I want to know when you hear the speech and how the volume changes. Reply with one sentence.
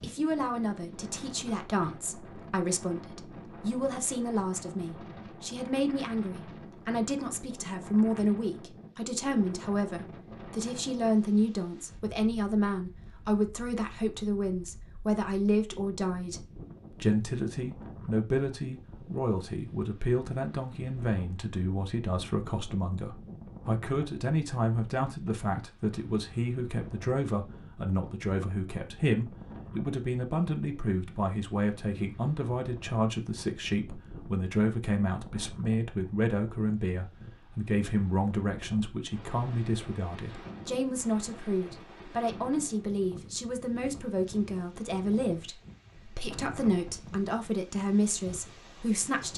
The speech can be heard from 0.0 to 49.3 s, at a steady volume.